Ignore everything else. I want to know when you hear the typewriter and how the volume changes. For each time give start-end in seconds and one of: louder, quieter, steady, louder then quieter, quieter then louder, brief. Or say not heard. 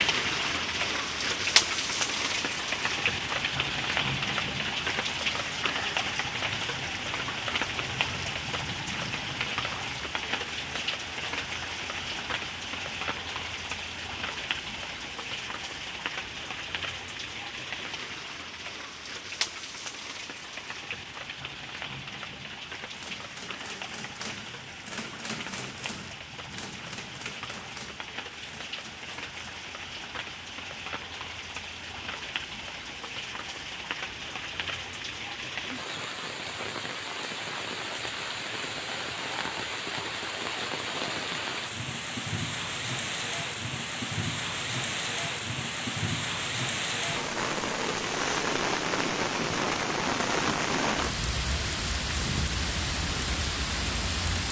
22.8-29.7 quieter.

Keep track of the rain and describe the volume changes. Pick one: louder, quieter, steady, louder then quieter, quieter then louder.
quieter then louder.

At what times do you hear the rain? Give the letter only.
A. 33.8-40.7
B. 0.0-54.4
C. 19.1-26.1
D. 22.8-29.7
B.